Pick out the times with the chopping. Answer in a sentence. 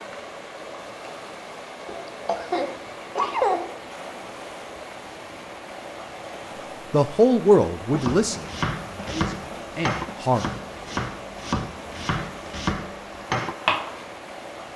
The chopping can be heard from 8.0 to 14.1 s.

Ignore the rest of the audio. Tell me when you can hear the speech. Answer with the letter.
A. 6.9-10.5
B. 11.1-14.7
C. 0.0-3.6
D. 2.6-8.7
A.